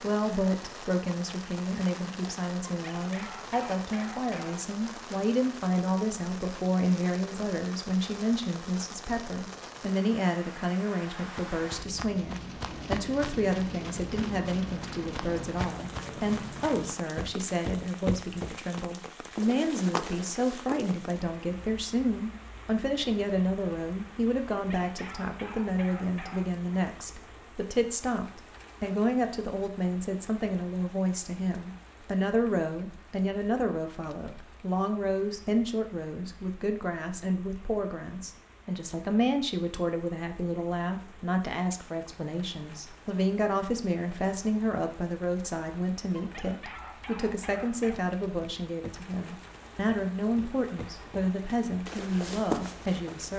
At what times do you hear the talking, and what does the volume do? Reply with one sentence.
The talking can be heard from 0.0 to 53.3 s, at a steady volume.